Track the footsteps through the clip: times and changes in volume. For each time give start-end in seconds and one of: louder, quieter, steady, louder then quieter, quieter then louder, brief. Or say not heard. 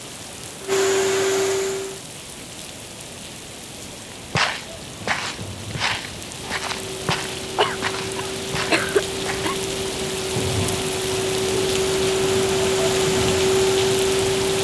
4.0-9.4 quieter.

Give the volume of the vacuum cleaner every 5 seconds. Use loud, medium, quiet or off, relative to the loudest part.
loud, medium, loud.